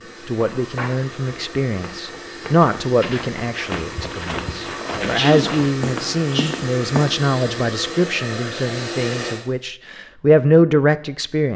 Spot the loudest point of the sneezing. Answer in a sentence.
The volume of the sneezing peaks at 5 seconds.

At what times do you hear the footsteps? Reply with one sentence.
You can hear the footsteps from 0.5 to 7.1 s.